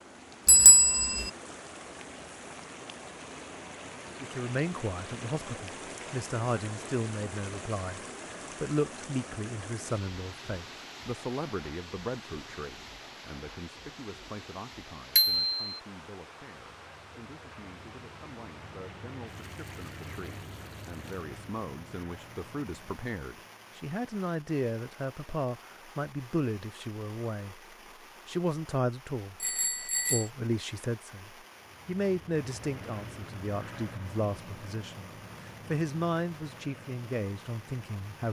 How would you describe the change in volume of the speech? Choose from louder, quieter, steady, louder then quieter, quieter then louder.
quieter then louder.